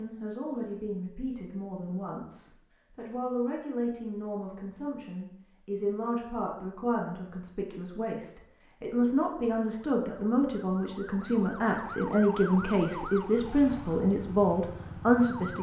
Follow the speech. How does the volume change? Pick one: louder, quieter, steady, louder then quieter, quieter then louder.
louder.